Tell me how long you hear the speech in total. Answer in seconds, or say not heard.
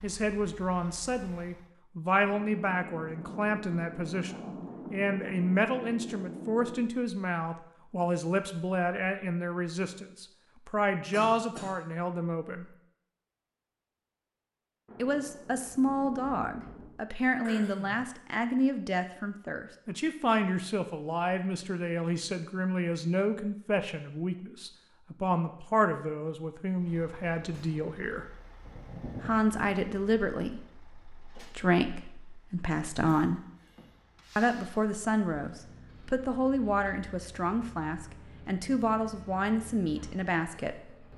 37 s.